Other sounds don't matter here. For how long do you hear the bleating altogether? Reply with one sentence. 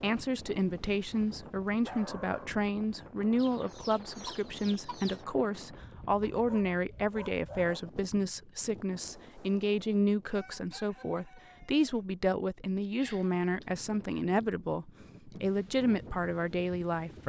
The bleating can't be heard in this clip.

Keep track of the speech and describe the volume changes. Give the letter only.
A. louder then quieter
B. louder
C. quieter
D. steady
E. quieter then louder
D.